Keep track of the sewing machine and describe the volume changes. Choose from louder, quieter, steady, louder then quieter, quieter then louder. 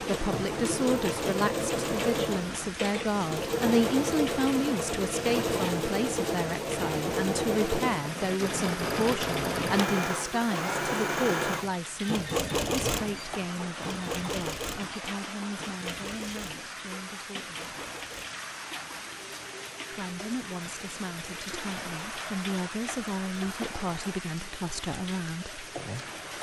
quieter.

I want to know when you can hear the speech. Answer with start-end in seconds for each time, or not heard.
0.0-17.6, 19.9-25.6.